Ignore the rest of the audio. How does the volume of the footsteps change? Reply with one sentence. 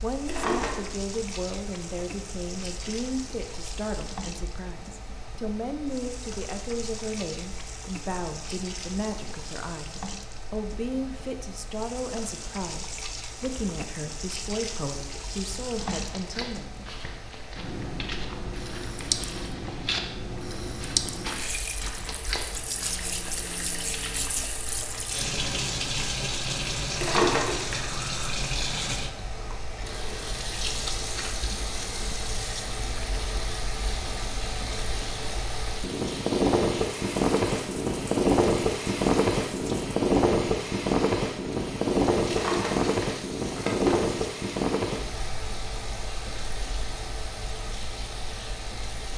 The loudness of the footsteps goes up, then down.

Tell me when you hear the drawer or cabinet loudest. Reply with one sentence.
The volume of the drawer or cabinet peaks at 27 seconds.